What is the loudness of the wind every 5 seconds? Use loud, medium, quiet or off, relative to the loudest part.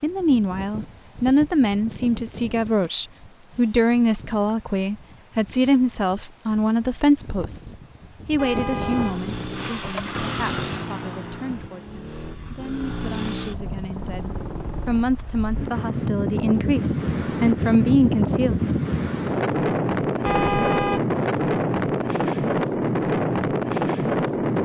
quiet, quiet, quiet, loud, loud.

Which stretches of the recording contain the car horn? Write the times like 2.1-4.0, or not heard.
8.3-10.2, 20.2-21.0.